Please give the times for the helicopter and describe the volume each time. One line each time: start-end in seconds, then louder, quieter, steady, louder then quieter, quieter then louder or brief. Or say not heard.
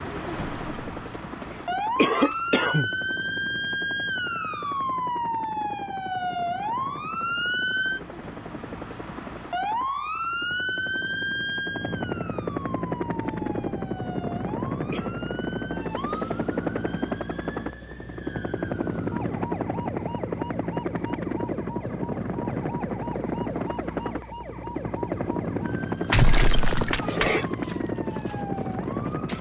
0.0-29.3 louder.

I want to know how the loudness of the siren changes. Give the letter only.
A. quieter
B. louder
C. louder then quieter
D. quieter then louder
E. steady
A.